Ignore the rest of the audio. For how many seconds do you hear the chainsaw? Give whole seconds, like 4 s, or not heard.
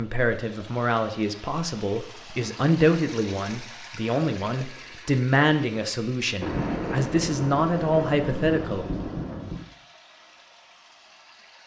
not heard.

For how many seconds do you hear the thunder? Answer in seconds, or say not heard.
3 s.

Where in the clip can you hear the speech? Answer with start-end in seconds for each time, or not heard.
0.0-8.8.